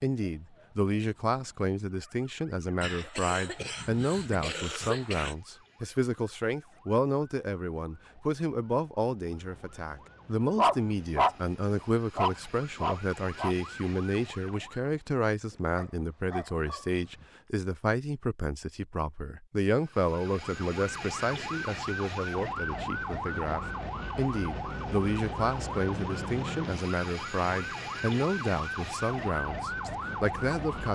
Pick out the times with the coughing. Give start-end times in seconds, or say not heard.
2.8-5.3.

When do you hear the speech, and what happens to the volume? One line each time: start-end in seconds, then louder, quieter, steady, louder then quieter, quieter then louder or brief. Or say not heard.
0.0-30.8 steady.